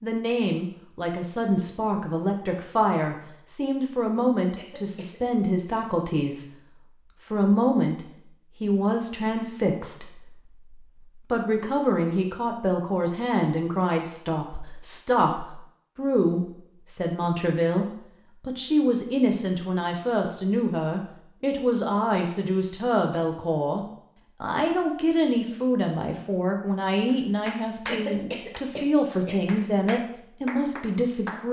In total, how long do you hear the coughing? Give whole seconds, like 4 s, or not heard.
2 s.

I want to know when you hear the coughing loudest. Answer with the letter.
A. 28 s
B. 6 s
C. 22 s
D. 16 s
A.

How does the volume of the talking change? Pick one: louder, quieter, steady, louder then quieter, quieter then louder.
steady.